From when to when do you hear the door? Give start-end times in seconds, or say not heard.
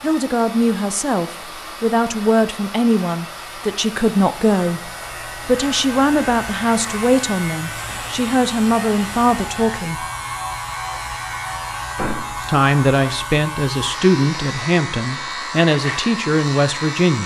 11.9-12.4.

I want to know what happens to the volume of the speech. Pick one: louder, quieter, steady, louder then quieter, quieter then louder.
steady.